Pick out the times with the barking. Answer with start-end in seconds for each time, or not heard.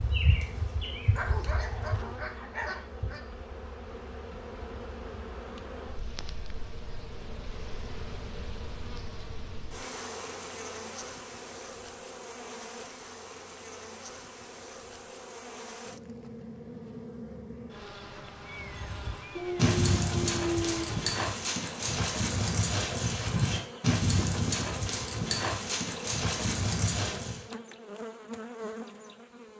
1.1-3.2, 19.4-20.9.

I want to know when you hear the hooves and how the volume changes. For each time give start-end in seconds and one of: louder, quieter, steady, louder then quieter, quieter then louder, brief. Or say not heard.
0.0-2.1 brief
18.6-27.4 steady.